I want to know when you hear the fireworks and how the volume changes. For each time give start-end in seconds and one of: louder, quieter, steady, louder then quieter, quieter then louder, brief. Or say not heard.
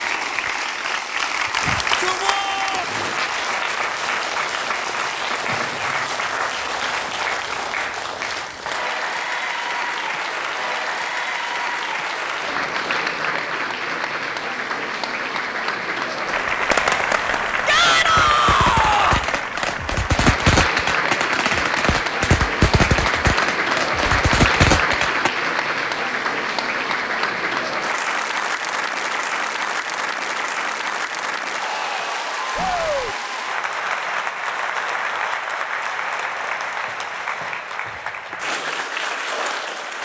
16.7-25.3 louder.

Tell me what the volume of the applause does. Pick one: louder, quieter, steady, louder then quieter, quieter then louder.
steady.